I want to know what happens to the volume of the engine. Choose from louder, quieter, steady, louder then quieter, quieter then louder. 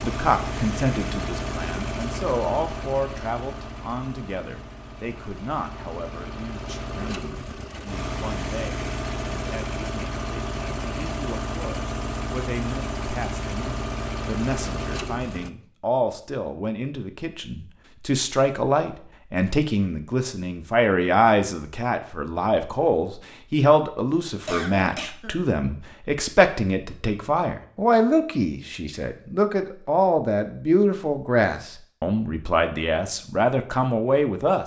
quieter then louder.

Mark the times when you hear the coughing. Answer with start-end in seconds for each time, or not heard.
24.4-25.4.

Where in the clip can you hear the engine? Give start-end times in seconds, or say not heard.
0.0-15.5.